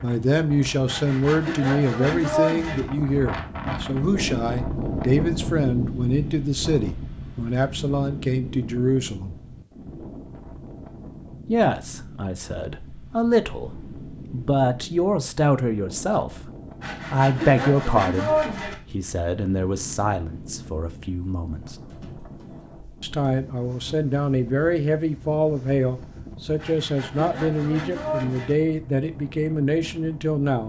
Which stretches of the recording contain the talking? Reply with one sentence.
The talking can be heard from 0.0 to 9.3 s, from 11.4 to 16.5 s, from 17.1 to 21.8 s and from 23.0 to 30.6 s.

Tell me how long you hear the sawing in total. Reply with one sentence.
You can hear the sawing for 6 seconds altogether.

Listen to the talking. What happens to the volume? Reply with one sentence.
The volume of the talking stays about the same.